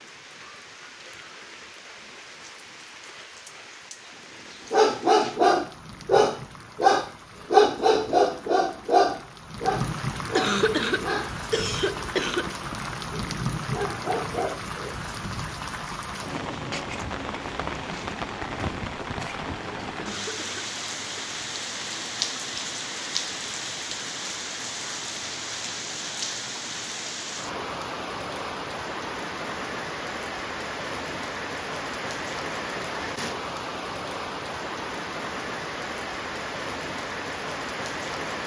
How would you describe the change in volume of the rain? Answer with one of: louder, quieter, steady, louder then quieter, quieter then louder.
louder.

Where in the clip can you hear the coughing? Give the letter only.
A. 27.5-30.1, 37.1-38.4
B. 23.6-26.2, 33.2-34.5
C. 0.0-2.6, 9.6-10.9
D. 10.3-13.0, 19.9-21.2
D.